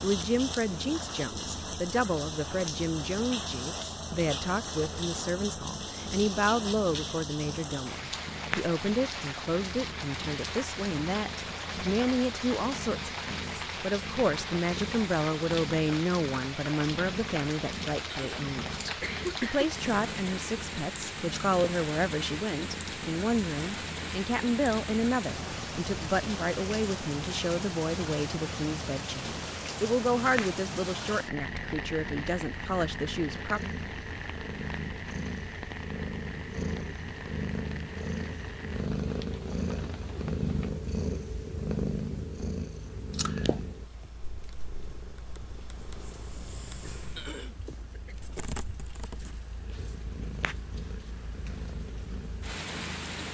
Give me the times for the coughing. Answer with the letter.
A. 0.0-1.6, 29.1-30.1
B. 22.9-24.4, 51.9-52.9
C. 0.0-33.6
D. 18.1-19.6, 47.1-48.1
D.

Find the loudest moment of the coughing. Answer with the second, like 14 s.
19 s.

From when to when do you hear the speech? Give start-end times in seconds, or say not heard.
0.0-33.6.